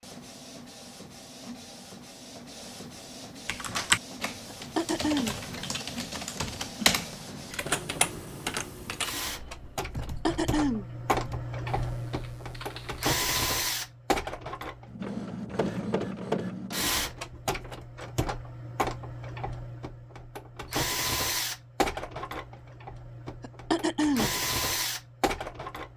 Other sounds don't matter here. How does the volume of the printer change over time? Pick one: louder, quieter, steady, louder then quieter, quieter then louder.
louder.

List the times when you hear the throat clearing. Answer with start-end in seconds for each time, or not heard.
4.5-5.3, 9.9-10.8, 23.4-24.3.